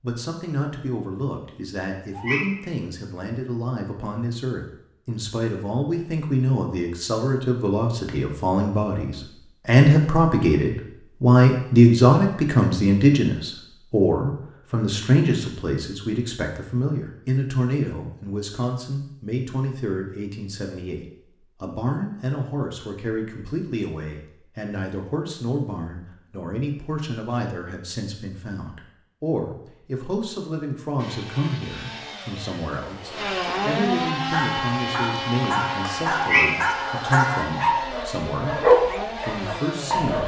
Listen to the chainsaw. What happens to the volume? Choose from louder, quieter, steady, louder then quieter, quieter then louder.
louder then quieter.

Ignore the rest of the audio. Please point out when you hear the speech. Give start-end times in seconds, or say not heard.
0.0-40.2.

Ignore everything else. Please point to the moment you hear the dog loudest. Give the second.
39 s.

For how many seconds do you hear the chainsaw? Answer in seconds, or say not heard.
9 s.